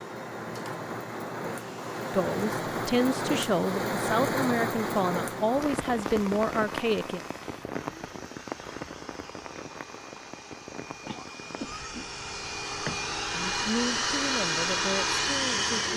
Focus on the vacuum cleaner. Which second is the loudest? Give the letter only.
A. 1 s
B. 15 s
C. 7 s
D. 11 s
B.